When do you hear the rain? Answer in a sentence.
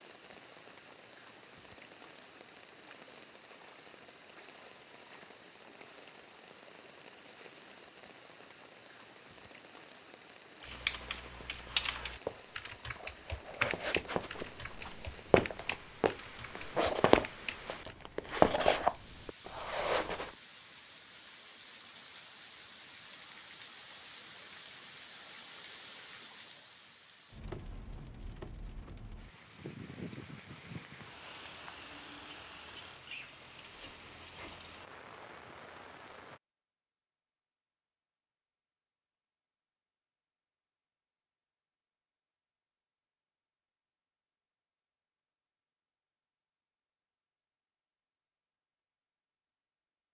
The rain can be heard from 0.0 to 36.4 s.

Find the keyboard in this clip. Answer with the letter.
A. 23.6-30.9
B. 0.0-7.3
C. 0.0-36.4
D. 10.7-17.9
D.